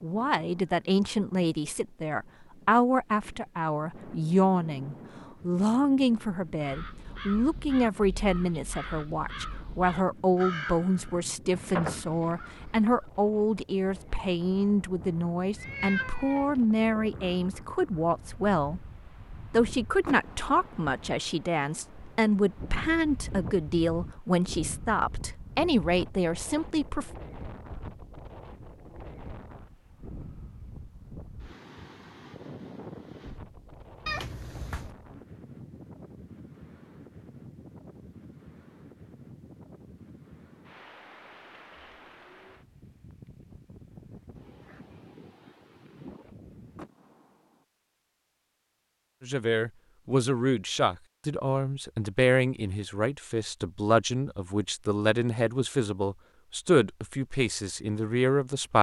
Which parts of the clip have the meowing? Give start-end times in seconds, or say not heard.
15.6-16.6, 34.0-35.0.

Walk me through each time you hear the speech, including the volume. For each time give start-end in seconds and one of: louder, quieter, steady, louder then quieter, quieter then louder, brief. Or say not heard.
0.0-27.1 steady
49.2-58.7 steady.